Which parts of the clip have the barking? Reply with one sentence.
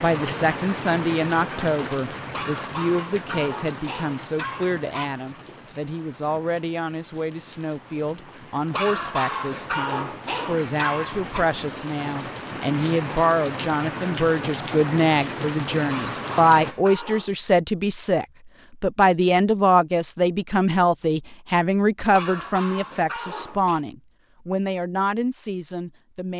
The barking can be heard from 2.3 to 5.1 s, from 8.7 to 11.4 s, from 15.8 to 17.4 s and from 22.1 to 23.8 s.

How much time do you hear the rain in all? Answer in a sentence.
The rain can be heard for 17 seconds in total.